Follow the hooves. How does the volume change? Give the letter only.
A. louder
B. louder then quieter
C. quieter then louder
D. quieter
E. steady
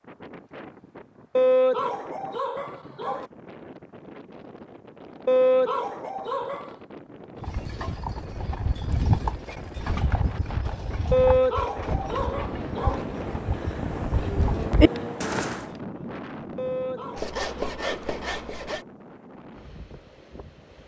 C.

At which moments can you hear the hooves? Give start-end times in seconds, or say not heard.
7.4-15.7.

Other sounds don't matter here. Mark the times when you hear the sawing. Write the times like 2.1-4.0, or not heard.
17.1-18.9.